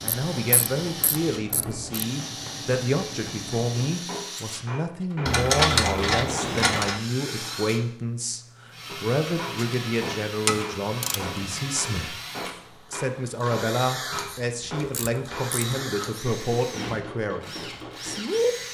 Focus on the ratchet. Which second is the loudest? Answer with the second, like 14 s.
6 s.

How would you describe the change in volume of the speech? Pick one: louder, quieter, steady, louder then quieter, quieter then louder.
steady.